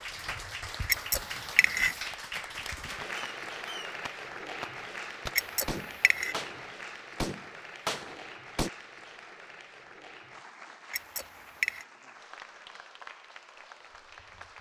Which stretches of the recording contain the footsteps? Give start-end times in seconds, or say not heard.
not heard.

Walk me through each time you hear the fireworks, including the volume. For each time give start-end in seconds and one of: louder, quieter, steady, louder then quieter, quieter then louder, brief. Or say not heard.
3.0-8.7 louder.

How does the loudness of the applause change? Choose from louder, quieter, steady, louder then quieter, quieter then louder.
quieter.